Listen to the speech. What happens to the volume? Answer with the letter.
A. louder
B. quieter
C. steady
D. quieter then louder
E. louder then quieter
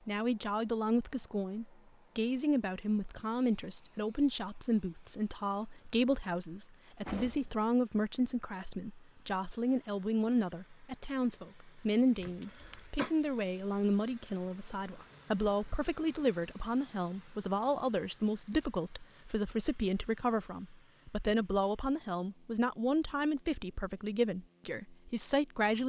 C.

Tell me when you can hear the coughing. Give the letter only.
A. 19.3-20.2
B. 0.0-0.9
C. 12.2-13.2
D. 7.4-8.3
C.